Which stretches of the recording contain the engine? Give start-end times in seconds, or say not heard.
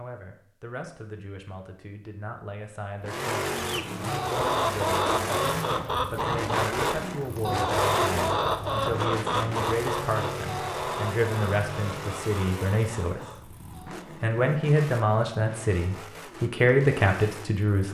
3.0-17.9.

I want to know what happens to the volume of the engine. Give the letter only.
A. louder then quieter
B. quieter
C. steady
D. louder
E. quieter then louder
B.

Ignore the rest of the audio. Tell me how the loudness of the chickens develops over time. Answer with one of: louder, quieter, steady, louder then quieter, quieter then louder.
quieter.